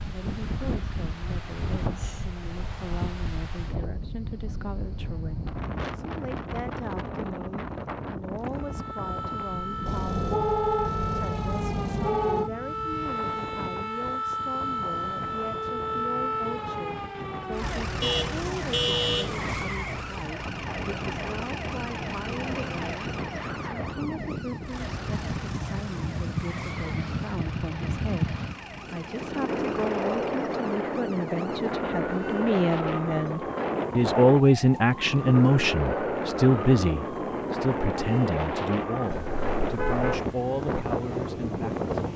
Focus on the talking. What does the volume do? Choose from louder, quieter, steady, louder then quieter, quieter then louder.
louder.